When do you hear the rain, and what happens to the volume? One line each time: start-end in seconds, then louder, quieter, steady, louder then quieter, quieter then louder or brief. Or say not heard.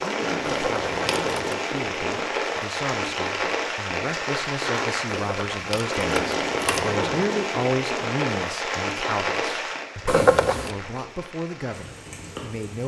0.0-12.8 quieter.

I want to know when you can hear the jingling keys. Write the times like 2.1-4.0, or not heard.
0.5-1.6, 5.2-6.9, 10.1-10.8.